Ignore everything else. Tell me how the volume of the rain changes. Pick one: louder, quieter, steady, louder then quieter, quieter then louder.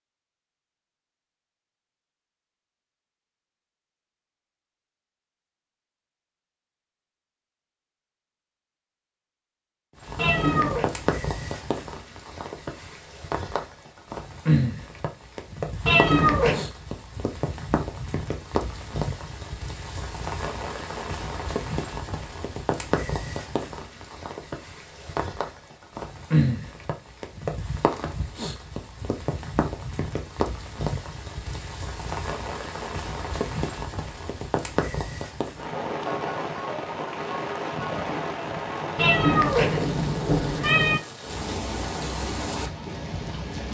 steady.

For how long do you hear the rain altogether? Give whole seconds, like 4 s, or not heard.
34 s.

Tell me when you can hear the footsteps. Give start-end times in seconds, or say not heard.
not heard.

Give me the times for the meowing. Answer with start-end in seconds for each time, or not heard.
10.2-10.9, 15.8-16.6, 39.0-41.0.